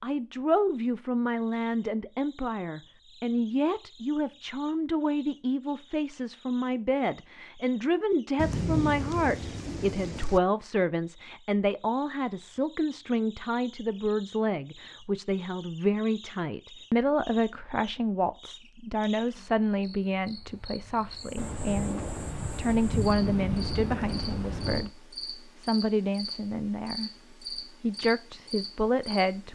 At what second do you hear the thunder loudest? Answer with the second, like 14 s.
9 s.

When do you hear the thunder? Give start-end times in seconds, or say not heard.
8.3-10.4, 21.4-24.9.